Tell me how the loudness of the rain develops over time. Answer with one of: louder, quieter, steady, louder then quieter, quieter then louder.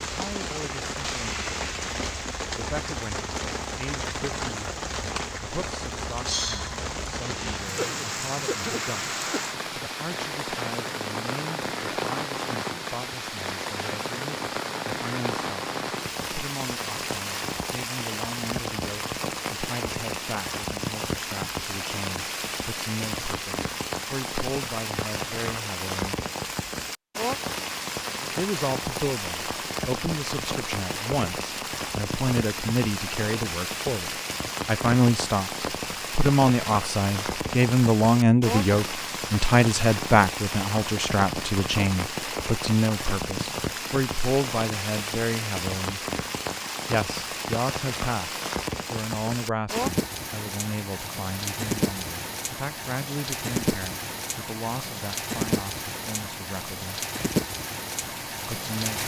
steady.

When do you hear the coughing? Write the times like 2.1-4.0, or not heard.
7.8-9.6.